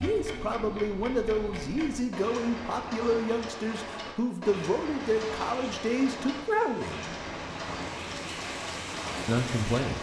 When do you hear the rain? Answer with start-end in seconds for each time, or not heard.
5.0-9.9.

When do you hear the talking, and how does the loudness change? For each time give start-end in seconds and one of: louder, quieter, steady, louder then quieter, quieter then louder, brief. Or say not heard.
0.0-7.0 steady
9.2-9.9 brief.